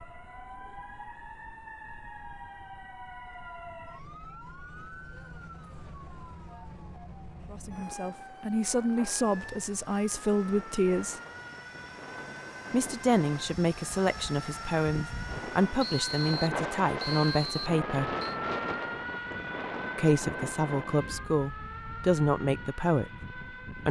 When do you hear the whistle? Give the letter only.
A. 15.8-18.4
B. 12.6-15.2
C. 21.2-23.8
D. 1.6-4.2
A.